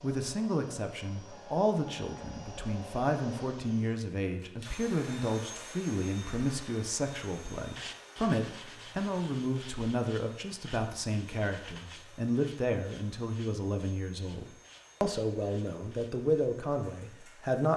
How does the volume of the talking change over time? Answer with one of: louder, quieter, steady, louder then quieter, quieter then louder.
steady.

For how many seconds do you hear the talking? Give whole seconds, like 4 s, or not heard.
18 s.